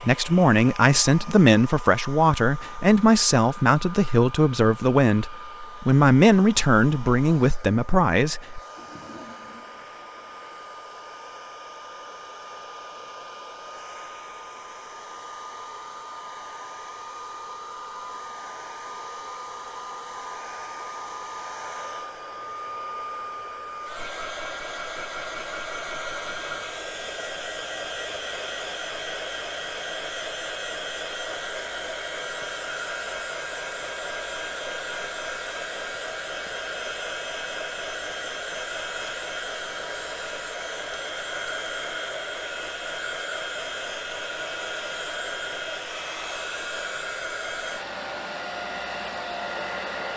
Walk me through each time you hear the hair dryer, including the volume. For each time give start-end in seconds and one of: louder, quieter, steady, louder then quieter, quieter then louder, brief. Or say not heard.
0.0-50.1 louder.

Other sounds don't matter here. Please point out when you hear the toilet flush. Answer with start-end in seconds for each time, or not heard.
8.8-10.7.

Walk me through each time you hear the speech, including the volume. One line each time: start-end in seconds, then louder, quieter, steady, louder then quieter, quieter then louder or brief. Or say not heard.
0.0-8.6 steady.